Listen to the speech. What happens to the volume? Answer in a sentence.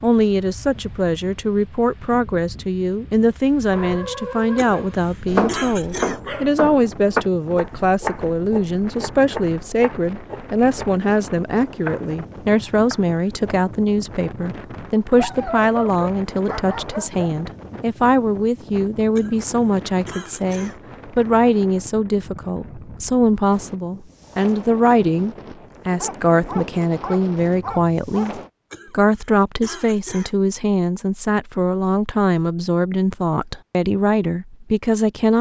The volume of the speech stays about the same.